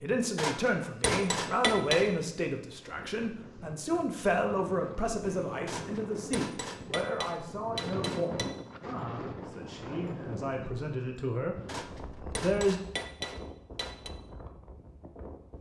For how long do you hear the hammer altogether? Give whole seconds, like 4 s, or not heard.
7 s.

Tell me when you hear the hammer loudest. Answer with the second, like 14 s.
2 s.